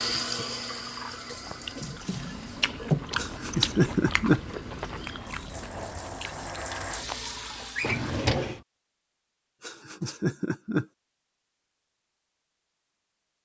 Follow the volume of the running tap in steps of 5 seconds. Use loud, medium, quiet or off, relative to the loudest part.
loud, loud, off.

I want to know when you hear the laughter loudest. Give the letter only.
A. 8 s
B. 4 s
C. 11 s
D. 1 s
B.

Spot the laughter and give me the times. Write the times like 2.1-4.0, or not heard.
3.1-4.4, 9.6-10.8.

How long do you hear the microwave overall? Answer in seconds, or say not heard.
not heard.